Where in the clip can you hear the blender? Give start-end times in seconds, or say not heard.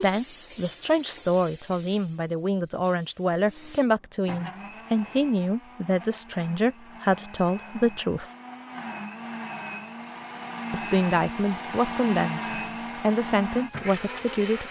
3.4-14.6.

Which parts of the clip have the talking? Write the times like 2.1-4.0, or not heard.
0.0-8.3, 10.7-14.6.